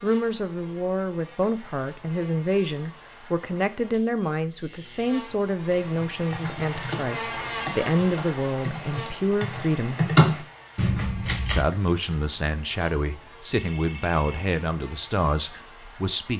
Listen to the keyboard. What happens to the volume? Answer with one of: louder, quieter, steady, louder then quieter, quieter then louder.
louder.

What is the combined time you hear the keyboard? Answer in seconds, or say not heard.
6 s.